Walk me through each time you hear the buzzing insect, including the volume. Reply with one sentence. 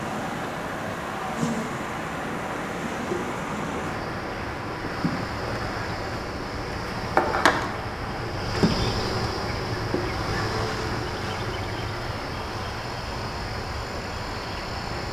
The buzzing insect can be heard from 0.0 to 15.0 s, getting louder then quieter.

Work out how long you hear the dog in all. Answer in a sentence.
The dog can't be heard in this clip.